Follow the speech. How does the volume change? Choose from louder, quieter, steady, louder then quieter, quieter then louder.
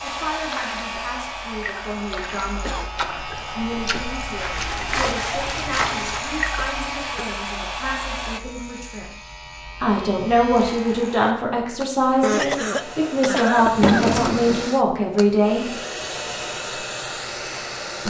louder.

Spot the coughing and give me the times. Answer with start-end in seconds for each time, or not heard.
2.6-4.0, 6.5-7.4, 12.2-14.2.